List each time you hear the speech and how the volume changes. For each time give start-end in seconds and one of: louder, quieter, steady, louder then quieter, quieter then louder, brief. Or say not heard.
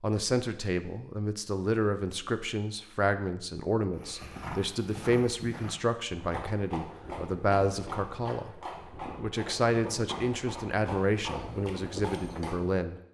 0.0-13.0 steady.